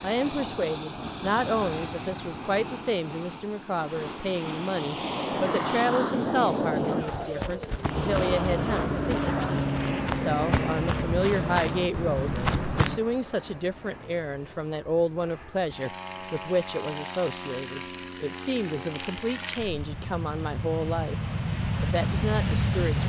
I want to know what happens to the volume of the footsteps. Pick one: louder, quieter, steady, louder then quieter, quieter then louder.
louder.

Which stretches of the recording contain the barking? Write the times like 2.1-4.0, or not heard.
not heard.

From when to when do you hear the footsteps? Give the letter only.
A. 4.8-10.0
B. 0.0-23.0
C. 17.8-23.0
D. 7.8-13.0
D.